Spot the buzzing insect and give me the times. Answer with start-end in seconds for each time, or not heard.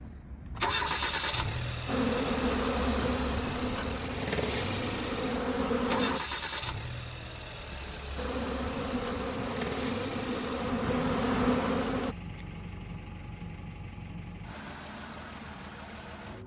1.9-6.2, 8.2-12.2.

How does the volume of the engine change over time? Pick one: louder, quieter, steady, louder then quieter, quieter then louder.
quieter.